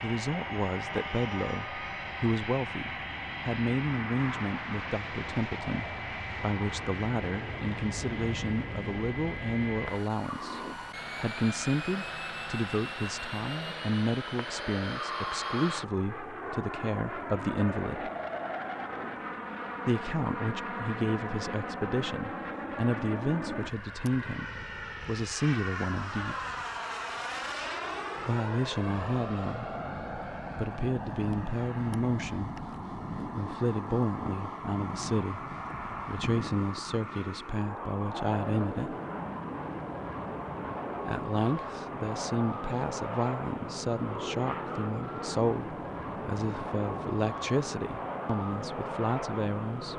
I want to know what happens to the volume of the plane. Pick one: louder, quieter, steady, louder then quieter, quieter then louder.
steady.